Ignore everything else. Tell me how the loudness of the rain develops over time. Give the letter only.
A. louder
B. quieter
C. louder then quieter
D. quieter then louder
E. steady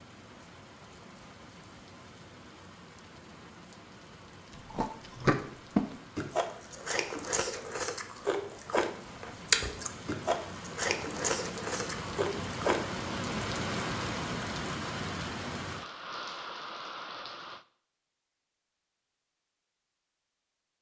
A.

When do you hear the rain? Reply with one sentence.
The rain can be heard from 0.0 to 17.6 s.